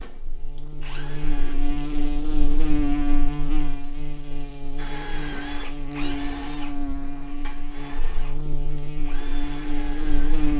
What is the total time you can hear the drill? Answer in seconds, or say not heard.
7 s.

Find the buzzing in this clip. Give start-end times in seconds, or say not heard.
0.0-10.5.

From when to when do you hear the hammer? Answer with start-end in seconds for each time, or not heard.
not heard.